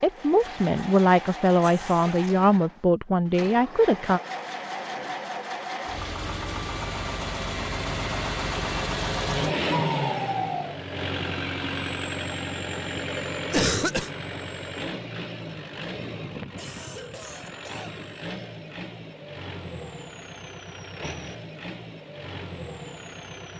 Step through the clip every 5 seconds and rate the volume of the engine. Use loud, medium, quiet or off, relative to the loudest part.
medium, loud, loud, medium, medium.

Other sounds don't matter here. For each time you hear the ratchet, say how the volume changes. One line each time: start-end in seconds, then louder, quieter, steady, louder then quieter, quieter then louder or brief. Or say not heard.
not heard.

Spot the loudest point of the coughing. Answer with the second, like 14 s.
14 s.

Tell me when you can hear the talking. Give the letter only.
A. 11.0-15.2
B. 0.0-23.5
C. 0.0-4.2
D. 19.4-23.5
C.